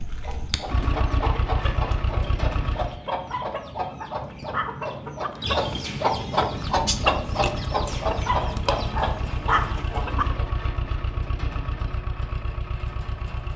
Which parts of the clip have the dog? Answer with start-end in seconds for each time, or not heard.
3.3-5.3, 8.2-10.2.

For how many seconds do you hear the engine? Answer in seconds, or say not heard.
10 s.